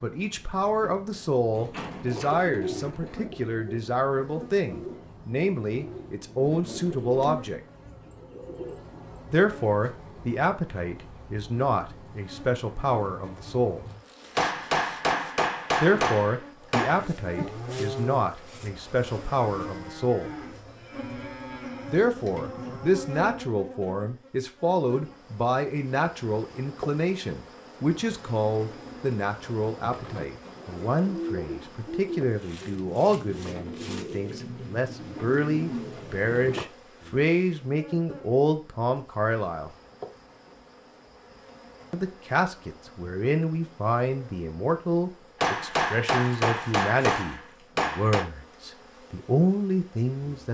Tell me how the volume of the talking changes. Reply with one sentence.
The loudness of the talking stays about the same.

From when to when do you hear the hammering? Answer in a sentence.
The hammering can be heard from 14.3 to 17.1 s and from 45.4 to 48.2 s.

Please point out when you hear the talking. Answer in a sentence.
The talking can be heard from 0.0 to 7.6 s, from 9.3 to 13.8 s, from 15.8 to 20.3 s, from 21.9 to 39.7 s and from 41.9 to 50.4 s.